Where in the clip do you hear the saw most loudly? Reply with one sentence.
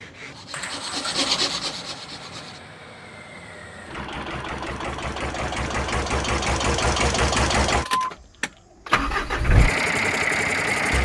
The loudest moment of the saw is at 1 second.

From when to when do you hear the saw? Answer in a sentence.
The saw can be heard from 0.0 to 2.6 s.